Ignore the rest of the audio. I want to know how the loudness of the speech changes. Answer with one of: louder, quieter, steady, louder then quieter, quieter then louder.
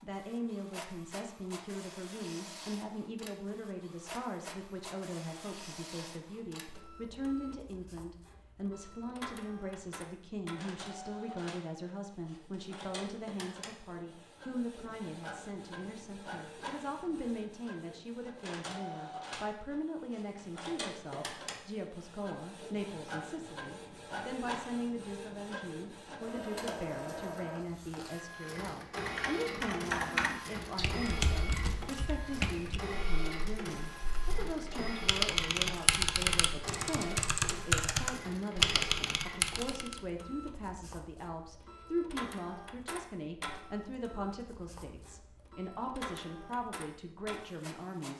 steady.